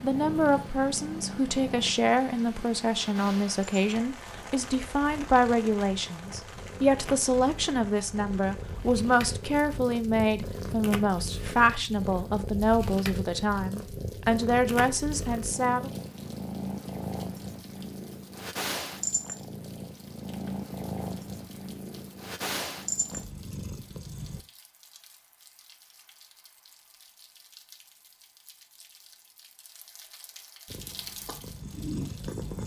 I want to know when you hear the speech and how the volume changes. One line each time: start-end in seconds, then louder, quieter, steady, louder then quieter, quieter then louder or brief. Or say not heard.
0.0-15.9 steady.